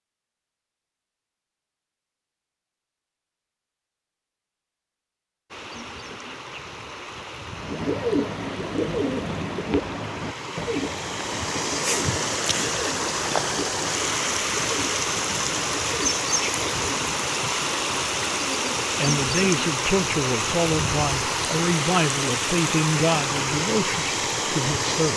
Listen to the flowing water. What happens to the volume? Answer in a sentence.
The loudness of the flowing water goes up.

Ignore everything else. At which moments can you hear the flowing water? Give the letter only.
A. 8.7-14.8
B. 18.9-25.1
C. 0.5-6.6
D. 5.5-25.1
D.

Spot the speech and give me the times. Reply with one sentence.
The speech can be heard from 18.9 to 25.1 s.